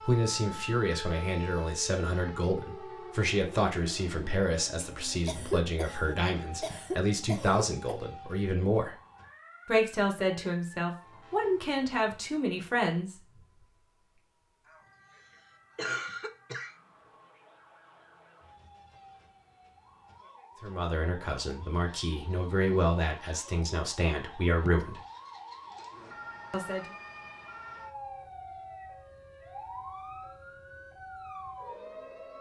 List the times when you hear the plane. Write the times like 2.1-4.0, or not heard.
not heard.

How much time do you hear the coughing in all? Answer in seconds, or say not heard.
5 s.